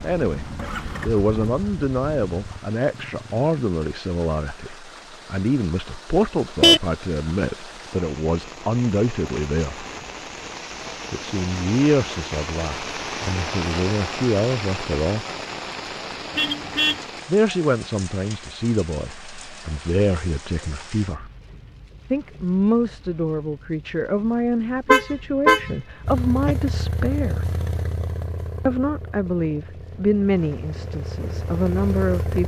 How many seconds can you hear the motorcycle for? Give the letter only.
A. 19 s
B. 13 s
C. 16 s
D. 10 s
D.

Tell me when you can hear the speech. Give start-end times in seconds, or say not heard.
0.0-9.8, 11.1-15.2, 17.2-21.3, 22.1-27.5, 28.6-32.4.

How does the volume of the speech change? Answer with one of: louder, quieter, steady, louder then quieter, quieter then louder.
steady.